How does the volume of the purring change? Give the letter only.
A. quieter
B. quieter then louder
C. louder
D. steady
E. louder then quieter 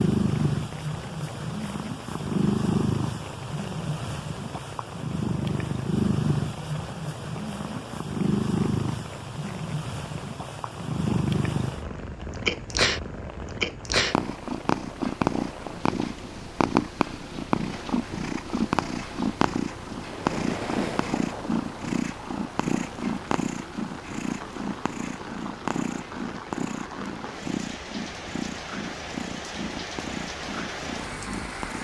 A.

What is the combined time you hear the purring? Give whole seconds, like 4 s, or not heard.
32 s.